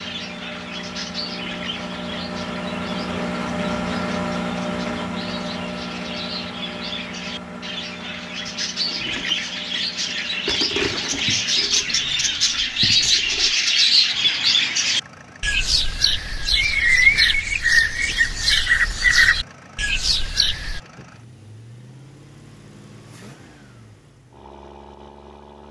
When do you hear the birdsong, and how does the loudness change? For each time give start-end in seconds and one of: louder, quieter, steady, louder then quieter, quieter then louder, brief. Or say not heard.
0.0-20.8 louder.